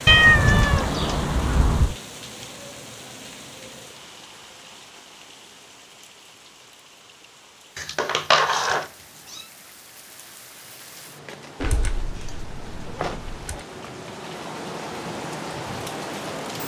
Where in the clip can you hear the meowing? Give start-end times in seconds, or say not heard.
0.1-1.9, 7.8-9.4, 11.6-13.6.